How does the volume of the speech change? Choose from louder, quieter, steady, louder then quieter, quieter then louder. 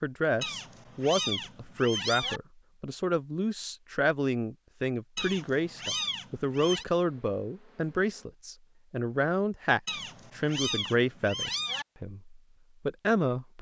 steady.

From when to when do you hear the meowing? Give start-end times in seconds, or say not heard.
0.4-2.4, 5.2-6.8, 9.8-11.8.